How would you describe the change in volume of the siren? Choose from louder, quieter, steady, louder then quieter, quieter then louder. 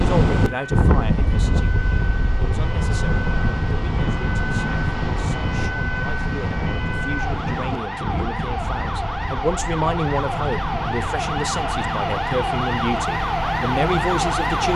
louder.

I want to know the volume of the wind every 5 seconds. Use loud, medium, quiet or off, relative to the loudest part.
loud, medium, medium.